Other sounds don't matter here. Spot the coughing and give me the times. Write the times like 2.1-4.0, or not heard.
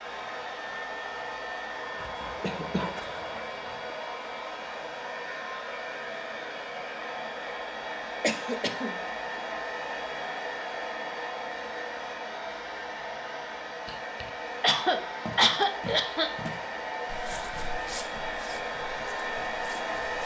2.0-4.0, 8.2-8.9, 13.8-16.3.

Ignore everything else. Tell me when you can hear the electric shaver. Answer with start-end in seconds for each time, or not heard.
not heard.